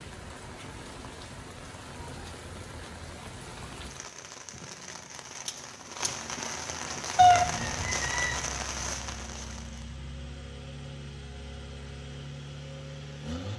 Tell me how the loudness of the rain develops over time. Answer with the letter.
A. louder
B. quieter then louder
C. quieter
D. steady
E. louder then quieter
A.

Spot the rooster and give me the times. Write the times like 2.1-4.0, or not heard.
7.2-8.3.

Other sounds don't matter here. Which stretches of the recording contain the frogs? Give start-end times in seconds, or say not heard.
not heard.